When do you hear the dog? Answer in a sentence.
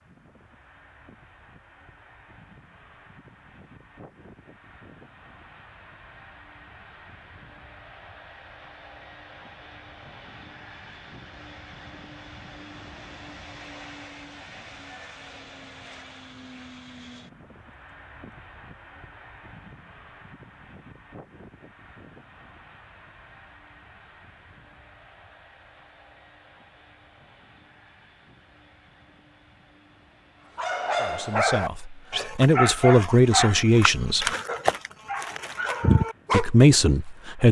You can hear the dog from 30.6 to 36.7 s.